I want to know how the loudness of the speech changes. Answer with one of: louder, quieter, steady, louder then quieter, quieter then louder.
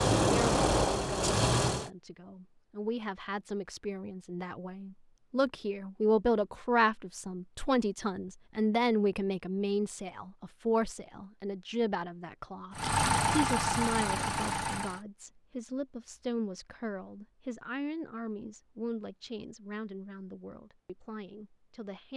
louder then quieter.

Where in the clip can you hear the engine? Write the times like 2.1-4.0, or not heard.
0.0-1.9, 12.7-15.0.